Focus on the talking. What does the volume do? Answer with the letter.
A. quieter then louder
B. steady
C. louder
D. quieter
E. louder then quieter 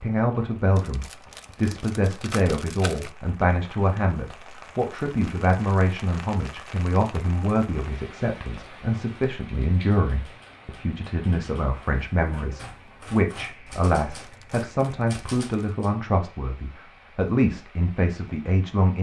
B.